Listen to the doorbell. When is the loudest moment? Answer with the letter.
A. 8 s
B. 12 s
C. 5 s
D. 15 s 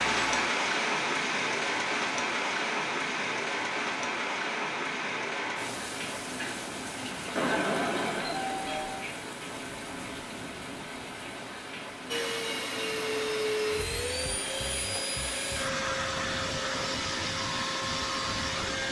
A.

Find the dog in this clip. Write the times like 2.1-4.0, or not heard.
not heard.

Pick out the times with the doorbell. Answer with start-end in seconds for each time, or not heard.
7.3-9.1.